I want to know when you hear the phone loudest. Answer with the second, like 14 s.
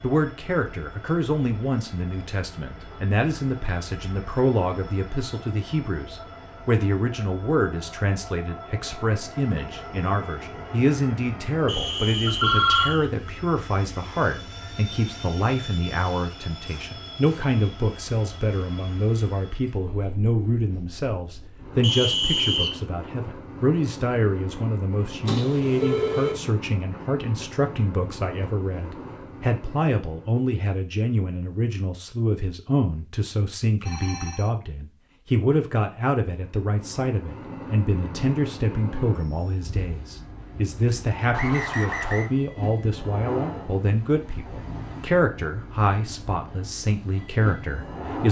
13 s.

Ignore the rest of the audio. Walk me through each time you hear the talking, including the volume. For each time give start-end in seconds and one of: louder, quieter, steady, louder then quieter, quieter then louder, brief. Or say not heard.
0.0-48.2 steady.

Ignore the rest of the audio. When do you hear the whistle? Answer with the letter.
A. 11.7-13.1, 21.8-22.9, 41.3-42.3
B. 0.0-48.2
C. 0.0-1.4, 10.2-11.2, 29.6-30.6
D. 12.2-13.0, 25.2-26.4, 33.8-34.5
A.